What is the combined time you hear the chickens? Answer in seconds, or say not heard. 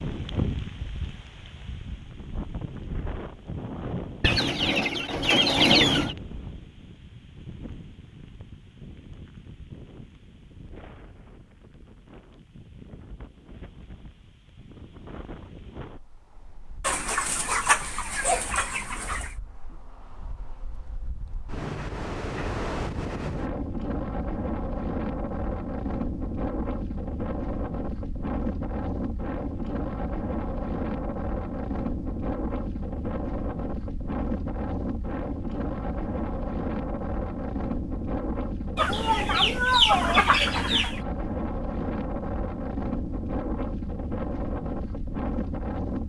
7 s.